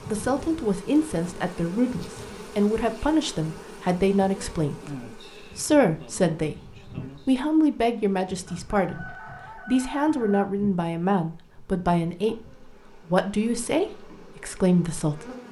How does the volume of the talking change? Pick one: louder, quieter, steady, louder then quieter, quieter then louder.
steady.